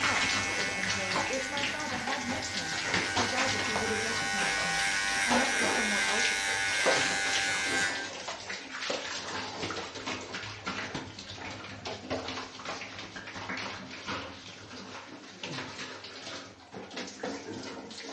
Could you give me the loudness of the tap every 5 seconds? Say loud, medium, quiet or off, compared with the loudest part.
loud, loud, medium, medium.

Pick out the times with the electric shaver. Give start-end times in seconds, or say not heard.
0.0-8.0.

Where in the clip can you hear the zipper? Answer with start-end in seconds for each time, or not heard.
not heard.